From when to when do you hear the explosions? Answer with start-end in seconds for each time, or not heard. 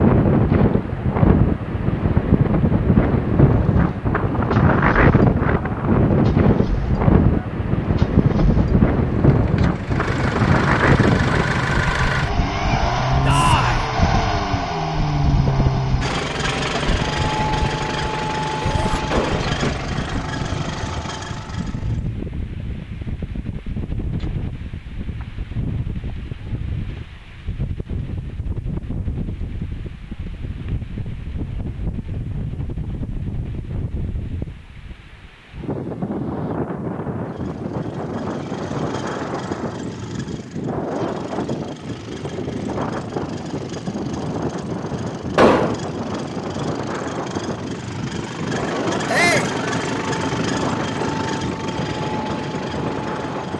19.1-19.6, 45.4-45.8.